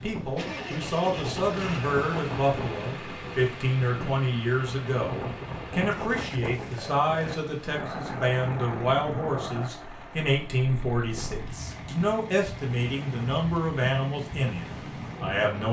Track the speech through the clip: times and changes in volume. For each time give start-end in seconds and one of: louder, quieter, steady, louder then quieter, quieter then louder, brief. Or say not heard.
0.0-15.6 steady.